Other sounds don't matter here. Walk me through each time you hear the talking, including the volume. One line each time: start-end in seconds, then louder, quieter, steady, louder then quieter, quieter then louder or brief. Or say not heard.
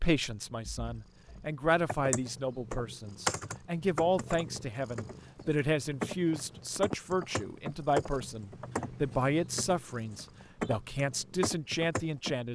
0.0-12.5 steady.